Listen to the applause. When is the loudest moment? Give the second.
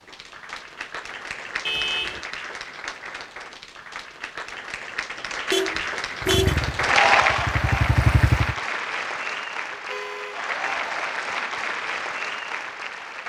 7 s.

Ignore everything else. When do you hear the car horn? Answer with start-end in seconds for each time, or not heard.
1.6-2.2, 5.5-6.5, 9.7-10.4.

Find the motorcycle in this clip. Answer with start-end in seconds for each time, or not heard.
6.2-8.6.